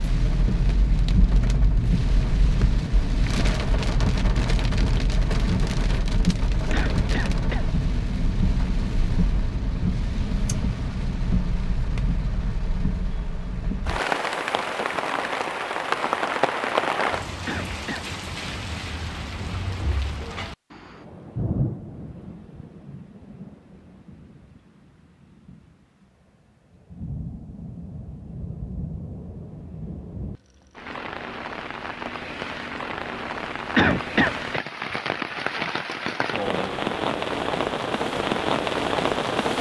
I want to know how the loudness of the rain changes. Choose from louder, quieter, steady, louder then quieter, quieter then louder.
quieter then louder.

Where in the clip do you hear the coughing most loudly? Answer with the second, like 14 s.
34 s.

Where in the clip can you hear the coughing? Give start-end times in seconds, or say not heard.
6.7-7.7, 17.4-18.1, 33.8-34.6.